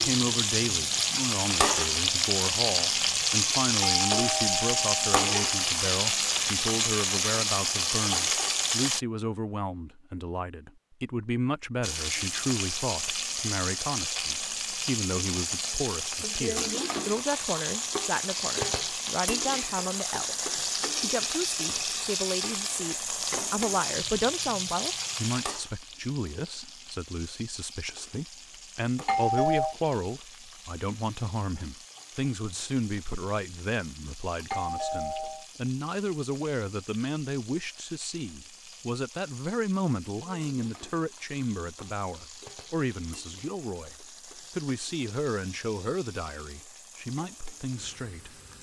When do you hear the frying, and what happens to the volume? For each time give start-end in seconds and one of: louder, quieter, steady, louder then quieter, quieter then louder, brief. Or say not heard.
0.0-9.1 steady
11.8-48.5 quieter.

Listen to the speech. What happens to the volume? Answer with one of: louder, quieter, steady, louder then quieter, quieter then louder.
steady.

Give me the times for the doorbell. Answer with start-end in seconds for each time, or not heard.
3.8-5.7, 29.1-29.8, 34.5-35.5.